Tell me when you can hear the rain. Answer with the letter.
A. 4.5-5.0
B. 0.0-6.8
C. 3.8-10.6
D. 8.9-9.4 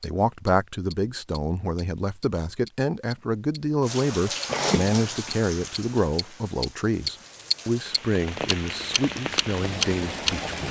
C.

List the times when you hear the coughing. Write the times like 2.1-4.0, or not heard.
4.5-5.0.